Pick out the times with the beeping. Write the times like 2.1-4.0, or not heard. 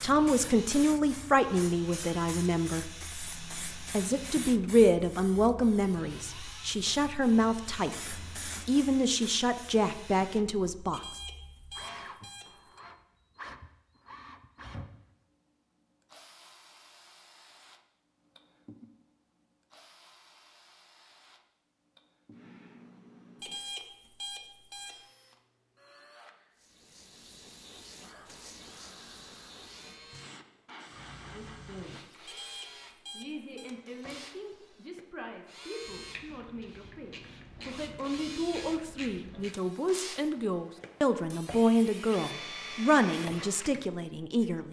10.9-12.8, 23.4-24.9, 32.2-33.7.